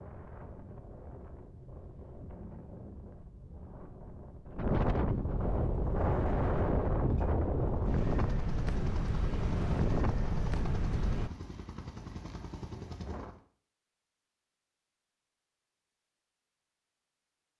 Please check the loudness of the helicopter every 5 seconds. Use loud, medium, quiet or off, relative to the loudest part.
off, loud, loud, off.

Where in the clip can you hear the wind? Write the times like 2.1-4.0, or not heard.
0.0-11.3.